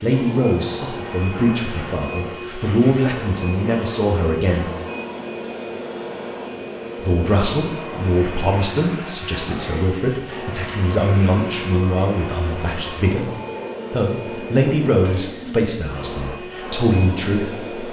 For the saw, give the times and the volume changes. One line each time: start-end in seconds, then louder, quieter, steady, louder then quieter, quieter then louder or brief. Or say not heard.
not heard.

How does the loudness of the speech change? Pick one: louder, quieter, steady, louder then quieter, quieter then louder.
steady.